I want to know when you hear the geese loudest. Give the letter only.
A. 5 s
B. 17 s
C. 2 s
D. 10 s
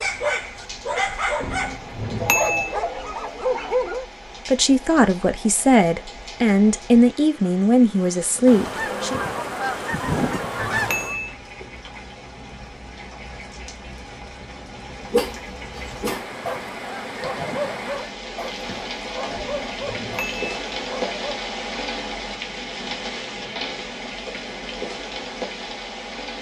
D.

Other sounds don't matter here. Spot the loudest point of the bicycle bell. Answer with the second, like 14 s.
2 s.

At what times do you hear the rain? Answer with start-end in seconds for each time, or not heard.
0.0-26.3.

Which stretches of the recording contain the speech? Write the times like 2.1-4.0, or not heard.
4.5-9.2.